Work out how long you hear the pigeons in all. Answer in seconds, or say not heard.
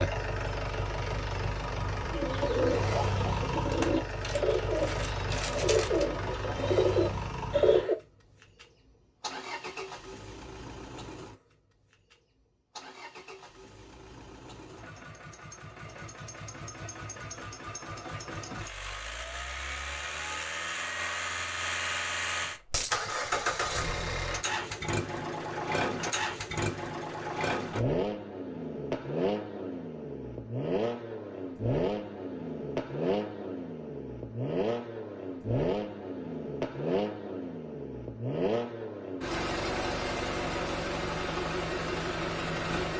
6 s.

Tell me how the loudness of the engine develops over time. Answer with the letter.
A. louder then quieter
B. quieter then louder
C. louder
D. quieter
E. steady
B.